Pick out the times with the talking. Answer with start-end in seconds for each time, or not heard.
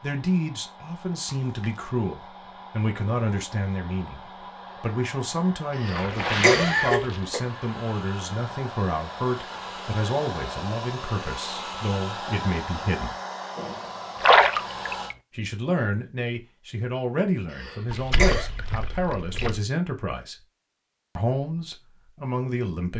0.0-13.2, 15.3-20.4, 21.1-22.9.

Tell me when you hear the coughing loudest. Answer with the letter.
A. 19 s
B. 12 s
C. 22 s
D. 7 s
D.